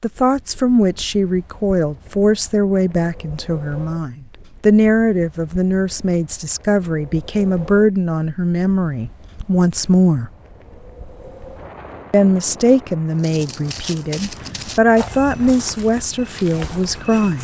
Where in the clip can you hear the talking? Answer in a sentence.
The talking can be heard from 0.0 to 10.3 s and from 12.1 to 17.3 s.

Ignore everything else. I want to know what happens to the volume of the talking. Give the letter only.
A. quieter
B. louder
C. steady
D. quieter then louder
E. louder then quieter
C.